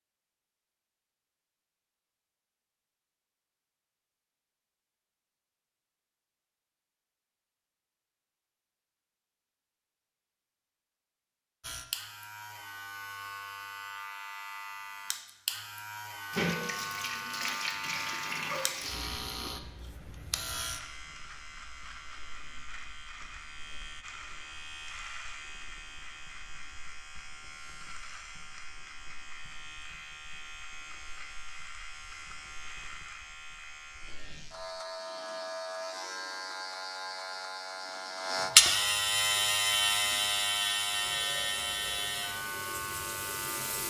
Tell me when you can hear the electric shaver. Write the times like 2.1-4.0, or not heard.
11.6-43.8.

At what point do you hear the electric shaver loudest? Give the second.
39 s.